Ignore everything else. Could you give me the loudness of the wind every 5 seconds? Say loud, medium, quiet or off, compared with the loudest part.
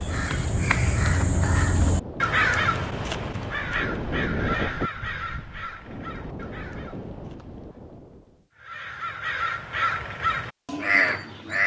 loud, medium, off.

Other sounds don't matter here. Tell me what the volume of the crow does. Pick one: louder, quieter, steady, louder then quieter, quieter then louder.
quieter then louder.